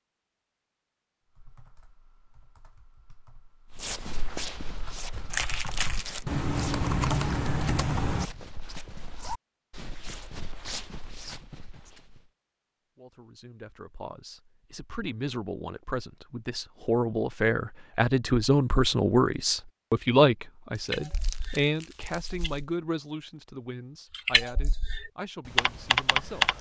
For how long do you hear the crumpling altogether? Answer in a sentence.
You can hear the crumpling for 3 seconds altogether.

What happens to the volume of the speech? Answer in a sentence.
The volume of the speech goes up, then down.